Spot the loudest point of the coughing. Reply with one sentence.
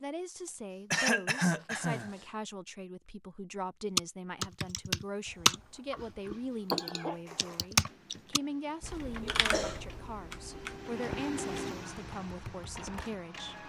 The volume of the coughing peaks at 1 second.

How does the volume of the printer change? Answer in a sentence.
The loudness of the printer goes up, then down.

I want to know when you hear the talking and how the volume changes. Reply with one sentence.
You can hear the talking from 0.0 to 13.6 s, at a steady volume.